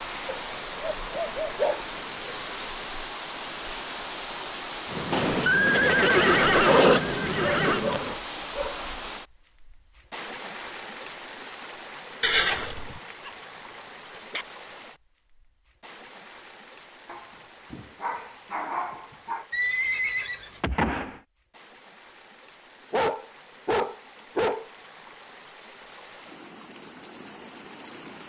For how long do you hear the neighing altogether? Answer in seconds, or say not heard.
5 s.